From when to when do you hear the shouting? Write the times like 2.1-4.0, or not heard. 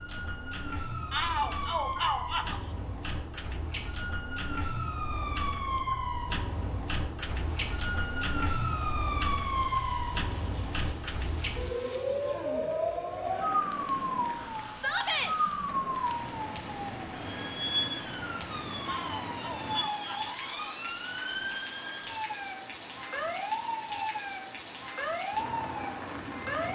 1.1-2.5, 14.8-15.3, 18.9-20.8.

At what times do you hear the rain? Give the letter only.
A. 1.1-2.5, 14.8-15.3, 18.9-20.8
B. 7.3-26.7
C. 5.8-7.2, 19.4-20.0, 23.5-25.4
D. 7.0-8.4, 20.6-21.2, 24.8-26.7
B.